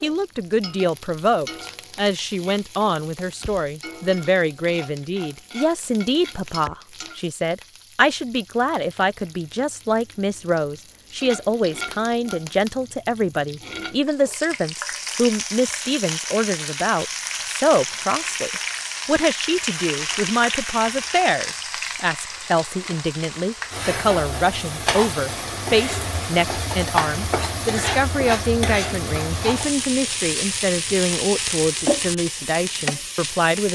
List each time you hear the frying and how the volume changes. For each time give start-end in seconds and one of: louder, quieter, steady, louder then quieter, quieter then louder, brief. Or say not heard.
0.0-33.7 louder.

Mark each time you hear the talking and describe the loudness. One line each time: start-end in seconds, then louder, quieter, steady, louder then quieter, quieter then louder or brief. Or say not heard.
0.0-33.7 steady.